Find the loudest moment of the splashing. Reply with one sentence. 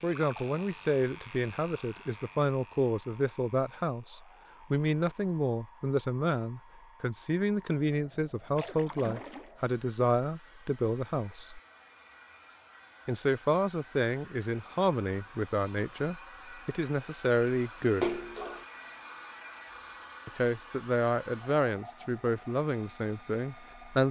The loudest moment of the splashing is at 18 seconds.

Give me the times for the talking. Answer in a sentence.
You can hear the talking from 0.0 to 11.6 s, from 13.1 to 18.2 s and from 20.2 to 24.0 s.